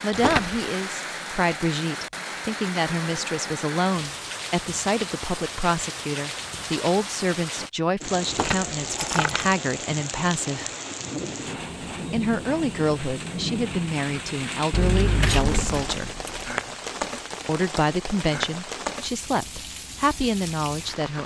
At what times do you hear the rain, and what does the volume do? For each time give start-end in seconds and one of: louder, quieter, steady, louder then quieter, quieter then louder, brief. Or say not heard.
0.0-21.2 steady.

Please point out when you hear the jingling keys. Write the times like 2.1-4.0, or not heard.
0.1-0.6, 8.2-9.6, 14.7-16.6.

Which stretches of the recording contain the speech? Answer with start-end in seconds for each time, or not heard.
0.0-10.7, 12.1-16.1, 17.4-21.2.